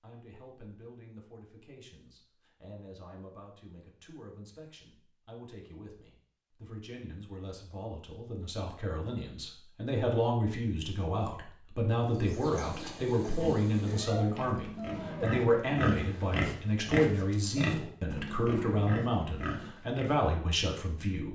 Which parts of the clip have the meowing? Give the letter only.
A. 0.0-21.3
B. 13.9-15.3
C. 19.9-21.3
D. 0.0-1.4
B.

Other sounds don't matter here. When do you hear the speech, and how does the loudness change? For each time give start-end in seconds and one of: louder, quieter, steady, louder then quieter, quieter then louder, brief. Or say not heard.
0.0-21.3 louder.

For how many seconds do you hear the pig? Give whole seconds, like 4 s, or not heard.
8 s.